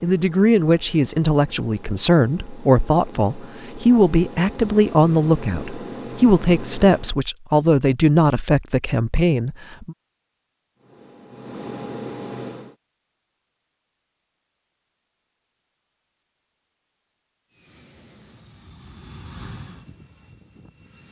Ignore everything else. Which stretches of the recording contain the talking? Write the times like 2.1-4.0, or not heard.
0.0-9.9.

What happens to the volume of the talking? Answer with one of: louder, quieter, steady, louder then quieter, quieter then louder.
steady.